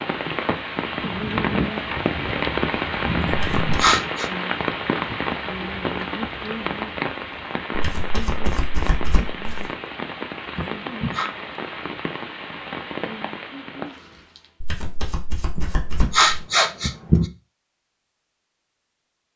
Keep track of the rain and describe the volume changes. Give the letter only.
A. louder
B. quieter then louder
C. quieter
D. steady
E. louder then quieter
C.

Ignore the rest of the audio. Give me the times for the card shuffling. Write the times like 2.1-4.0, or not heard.
3.3-3.8, 7.7-9.7, 14.6-16.4.